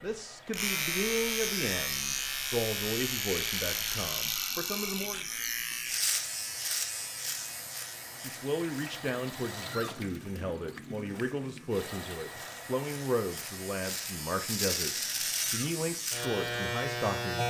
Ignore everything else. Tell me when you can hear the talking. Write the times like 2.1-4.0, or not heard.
0.0-5.2, 8.2-17.4.